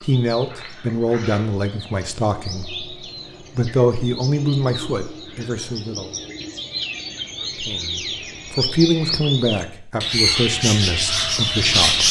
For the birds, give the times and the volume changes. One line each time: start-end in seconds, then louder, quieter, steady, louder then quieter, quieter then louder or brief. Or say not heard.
0.0-12.0 louder.